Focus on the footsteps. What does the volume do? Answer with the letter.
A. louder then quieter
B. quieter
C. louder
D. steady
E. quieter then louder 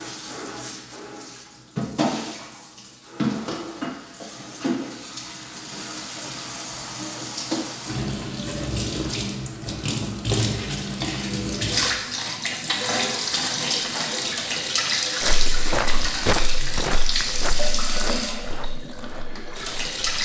B.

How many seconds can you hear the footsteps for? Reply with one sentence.
You can hear the footsteps for 5 seconds altogether.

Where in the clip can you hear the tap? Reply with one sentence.
You can hear the tap from 0.0 to 20.1 s.